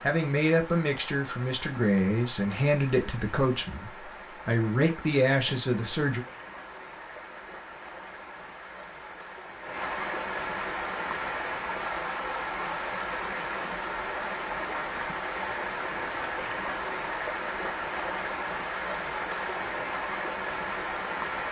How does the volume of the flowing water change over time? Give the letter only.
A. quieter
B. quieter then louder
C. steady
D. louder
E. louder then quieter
D.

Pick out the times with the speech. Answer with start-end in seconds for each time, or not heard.
0.0-6.2.